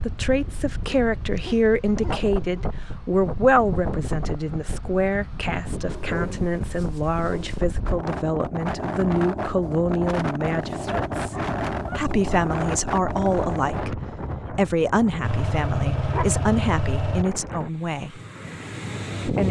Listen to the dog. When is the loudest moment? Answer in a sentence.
The volume of the dog peaks at 16 seconds.